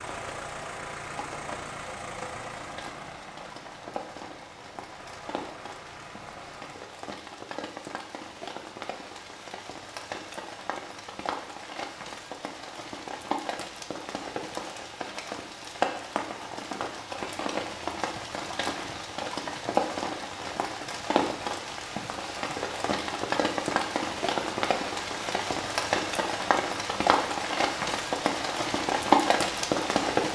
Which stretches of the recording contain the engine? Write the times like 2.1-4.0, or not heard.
0.0-6.9.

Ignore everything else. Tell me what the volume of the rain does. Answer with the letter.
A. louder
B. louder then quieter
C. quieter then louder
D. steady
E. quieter
A.